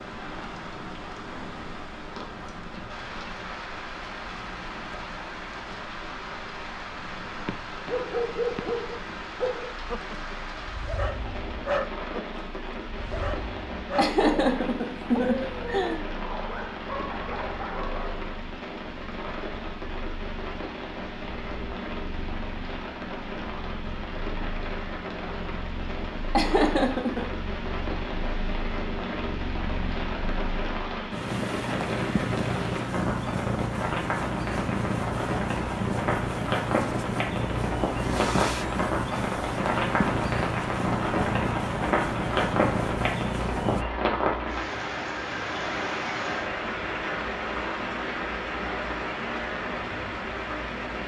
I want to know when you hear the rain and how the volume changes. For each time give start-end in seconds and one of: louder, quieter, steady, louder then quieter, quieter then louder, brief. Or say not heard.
0.0-51.0 louder.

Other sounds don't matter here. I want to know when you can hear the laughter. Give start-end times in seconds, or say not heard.
13.9-16.0, 26.4-27.2.